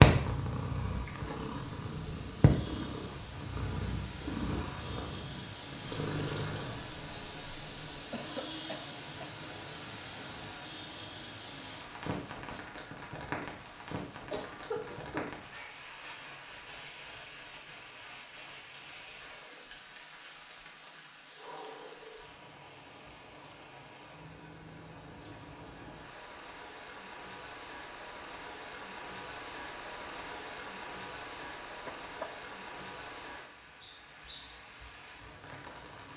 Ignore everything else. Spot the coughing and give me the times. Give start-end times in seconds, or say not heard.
8.1-9.3, 14.3-15.4, 31.4-32.9.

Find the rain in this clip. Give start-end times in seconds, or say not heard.
0.1-36.1.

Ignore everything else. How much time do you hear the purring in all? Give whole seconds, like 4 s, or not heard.
7 s.